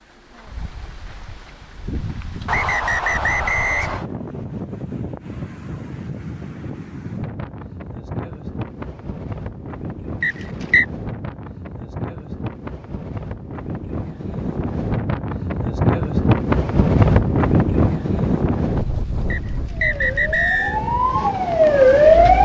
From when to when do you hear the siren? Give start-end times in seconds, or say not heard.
19.7-22.3.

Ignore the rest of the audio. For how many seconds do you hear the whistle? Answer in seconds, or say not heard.
4 s.